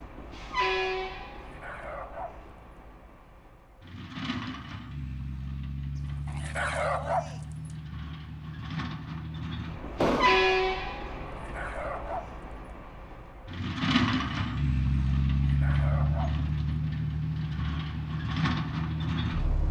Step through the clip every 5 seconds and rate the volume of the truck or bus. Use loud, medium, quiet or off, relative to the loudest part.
medium, medium, loud, loud.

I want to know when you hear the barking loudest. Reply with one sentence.
The loudest moment of the barking is at 7 seconds.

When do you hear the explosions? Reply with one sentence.
The explosions can be heard from 10.0 to 10.6 s.